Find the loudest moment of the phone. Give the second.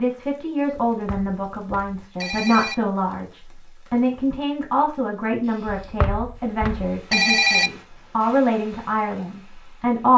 7 s.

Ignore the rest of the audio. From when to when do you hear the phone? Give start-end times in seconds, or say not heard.
0.8-2.8, 5.7-7.7.